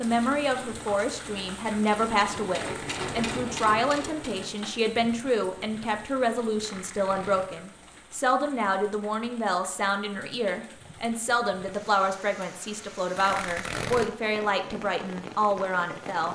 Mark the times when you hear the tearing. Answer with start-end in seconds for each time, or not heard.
2.5-3.4, 6.5-7.5, 13.2-14.1.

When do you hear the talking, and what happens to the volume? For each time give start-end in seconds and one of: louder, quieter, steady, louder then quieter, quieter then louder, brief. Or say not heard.
0.0-16.3 steady.